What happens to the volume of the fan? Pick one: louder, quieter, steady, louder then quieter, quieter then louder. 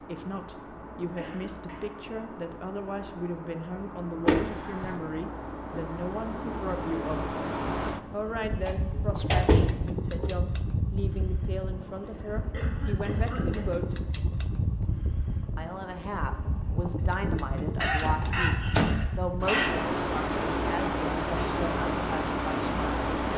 louder.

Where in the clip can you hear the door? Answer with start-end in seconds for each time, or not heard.
4.2-5.0, 8.4-10.3, 18.0-19.0.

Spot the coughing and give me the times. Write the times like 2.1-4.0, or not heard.
1.1-2.0, 12.0-13.8, 17.8-19.7.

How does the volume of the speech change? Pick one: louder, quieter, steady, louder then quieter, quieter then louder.
steady.